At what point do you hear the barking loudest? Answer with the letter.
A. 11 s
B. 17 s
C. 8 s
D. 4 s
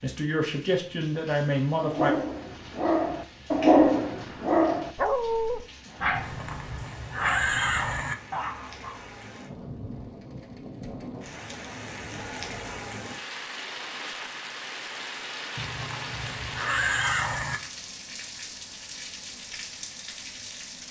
D.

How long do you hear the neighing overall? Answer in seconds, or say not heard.
4 s.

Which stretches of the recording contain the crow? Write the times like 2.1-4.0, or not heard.
not heard.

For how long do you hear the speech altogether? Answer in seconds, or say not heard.
2 s.